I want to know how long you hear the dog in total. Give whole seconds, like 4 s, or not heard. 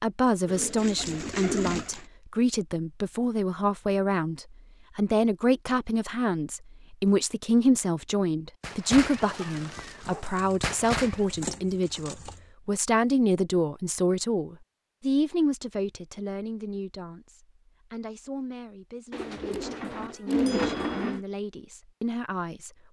3 s.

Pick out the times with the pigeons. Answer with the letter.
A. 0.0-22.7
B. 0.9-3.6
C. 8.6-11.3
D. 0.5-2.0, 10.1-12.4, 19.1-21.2
D.